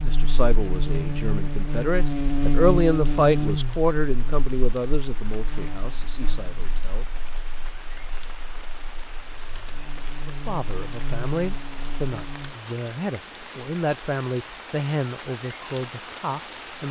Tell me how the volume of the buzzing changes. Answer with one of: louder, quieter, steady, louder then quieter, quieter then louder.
quieter then louder.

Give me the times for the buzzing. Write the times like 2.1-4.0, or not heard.
0.0-12.6.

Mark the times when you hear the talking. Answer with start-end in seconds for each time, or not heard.
0.0-7.0, 10.2-16.8.